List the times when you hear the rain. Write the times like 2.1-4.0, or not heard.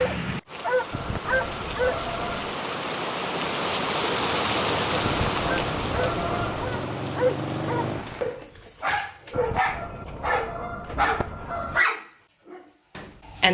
0.0-8.4.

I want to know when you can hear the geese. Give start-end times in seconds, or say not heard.
0.9-2.5, 5.0-6.7, 9.3-11.8.